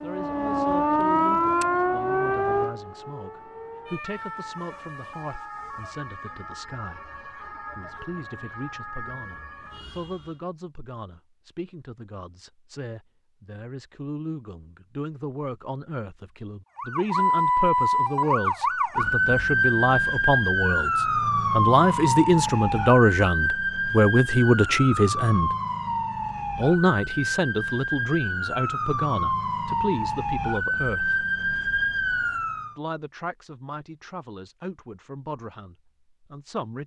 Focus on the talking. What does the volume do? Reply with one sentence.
The loudness of the talking goes up, then down.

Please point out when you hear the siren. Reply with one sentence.
The siren can be heard from 0.0 to 10.4 s and from 16.8 to 32.8 s.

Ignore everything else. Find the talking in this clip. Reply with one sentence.
You can hear the talking from 0.0 to 25.6 s, from 26.6 to 31.2 s and from 32.8 to 36.8 s.